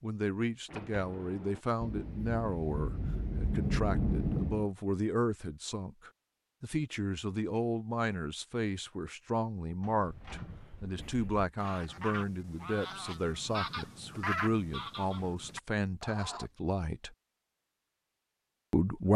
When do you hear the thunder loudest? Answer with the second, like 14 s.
4 s.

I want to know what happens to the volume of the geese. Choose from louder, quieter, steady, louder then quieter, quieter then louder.
louder then quieter.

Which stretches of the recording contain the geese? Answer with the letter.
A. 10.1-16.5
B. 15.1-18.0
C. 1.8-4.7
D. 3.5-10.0
A.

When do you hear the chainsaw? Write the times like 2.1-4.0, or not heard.
not heard.